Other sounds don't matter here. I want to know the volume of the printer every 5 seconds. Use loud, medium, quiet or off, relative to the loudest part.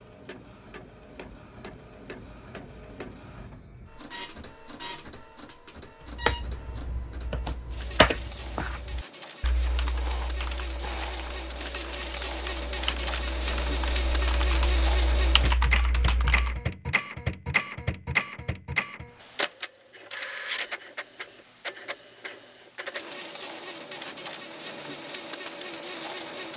quiet, quiet, loud, loud, medium, medium.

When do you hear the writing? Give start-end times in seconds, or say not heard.
not heard.